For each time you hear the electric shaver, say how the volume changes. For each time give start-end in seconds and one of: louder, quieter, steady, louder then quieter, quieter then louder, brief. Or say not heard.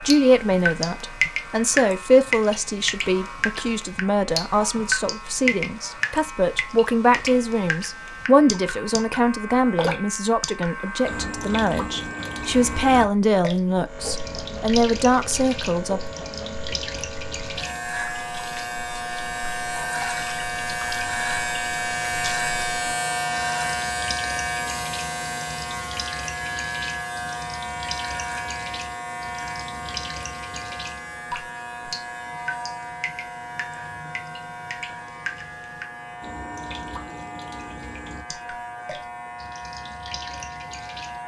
0.0-41.2 louder then quieter.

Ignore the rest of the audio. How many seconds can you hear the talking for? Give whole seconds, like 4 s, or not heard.
16 s.